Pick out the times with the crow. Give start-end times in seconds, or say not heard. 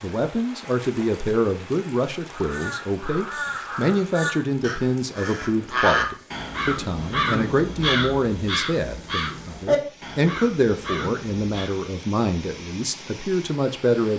2.3-11.8.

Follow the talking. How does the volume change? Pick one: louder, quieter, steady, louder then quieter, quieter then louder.
steady.